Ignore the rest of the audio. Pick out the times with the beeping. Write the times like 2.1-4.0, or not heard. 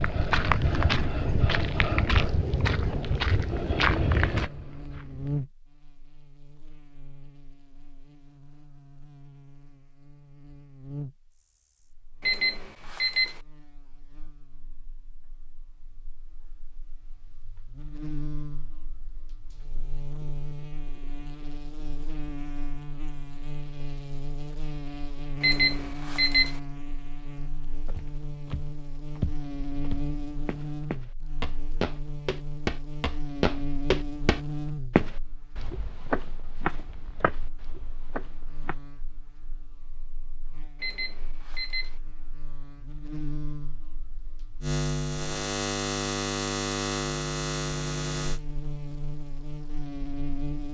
12.2-13.4, 25.4-26.6, 40.8-42.0.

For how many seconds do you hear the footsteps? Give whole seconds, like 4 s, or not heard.
16 s.